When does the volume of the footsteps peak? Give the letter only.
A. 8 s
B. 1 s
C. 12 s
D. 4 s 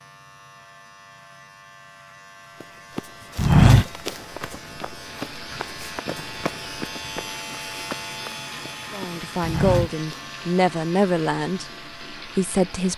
D.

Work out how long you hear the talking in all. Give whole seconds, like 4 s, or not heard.
4 s.